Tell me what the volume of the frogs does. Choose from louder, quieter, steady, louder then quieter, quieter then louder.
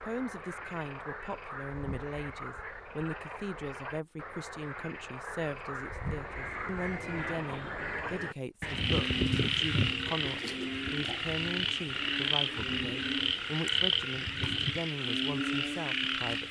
louder.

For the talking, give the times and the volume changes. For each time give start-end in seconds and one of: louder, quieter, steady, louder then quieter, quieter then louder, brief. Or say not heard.
0.0-16.4 steady.